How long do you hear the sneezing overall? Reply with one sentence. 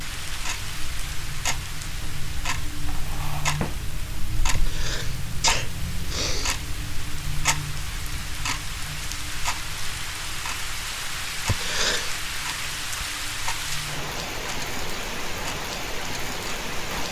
You can hear the sneezing for 3 seconds altogether.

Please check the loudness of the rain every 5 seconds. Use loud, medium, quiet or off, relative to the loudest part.
medium, medium, loud, loud.